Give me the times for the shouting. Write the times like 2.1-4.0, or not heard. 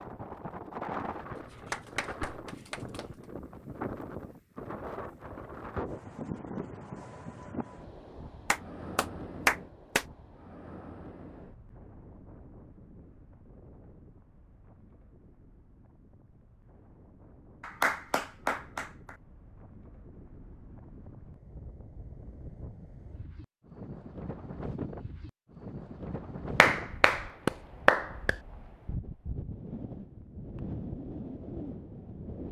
not heard.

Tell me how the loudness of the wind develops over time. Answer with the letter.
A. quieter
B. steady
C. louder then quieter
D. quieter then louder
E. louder
D.